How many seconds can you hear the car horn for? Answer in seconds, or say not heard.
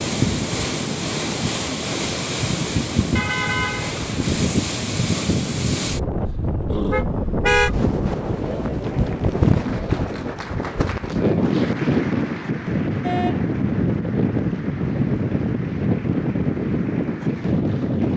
2 s.